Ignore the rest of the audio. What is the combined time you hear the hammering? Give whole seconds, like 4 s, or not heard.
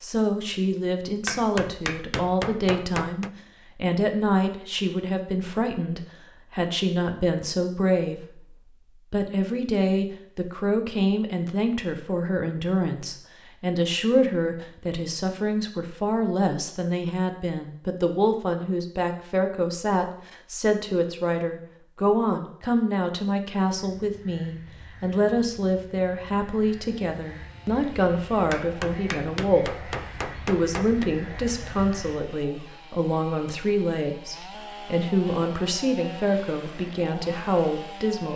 5 s.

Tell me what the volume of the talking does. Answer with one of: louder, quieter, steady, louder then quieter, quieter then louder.
steady.